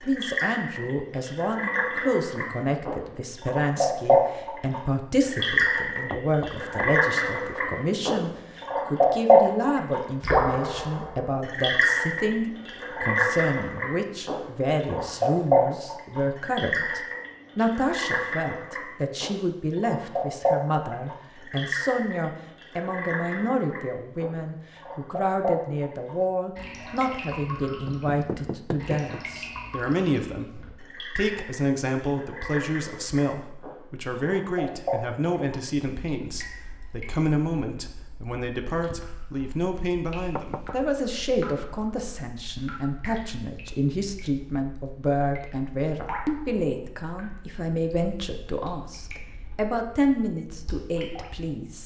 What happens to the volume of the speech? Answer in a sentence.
The volume of the speech stays about the same.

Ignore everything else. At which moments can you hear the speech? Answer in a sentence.
You can hear the speech from 0.0 to 51.8 s.